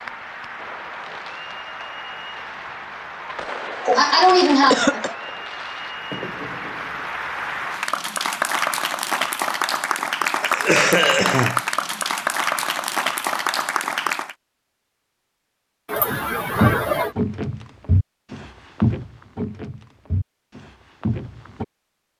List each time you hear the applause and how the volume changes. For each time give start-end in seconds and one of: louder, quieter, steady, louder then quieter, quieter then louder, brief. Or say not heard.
0.0-14.3 louder.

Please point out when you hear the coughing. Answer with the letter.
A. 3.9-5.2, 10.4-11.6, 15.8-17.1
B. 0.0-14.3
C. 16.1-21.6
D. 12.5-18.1
A.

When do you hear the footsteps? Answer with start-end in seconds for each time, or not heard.
16.1-21.6.